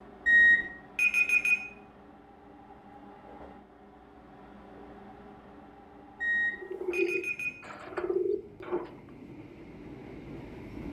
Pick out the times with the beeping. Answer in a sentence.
The beeping can be heard from 0.2 to 1.6 s and from 6.2 to 7.5 s.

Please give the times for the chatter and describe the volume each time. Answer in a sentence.
You can't hear the chatter here.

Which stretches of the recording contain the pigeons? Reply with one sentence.
The pigeons can be heard from 6.5 to 9.0 s.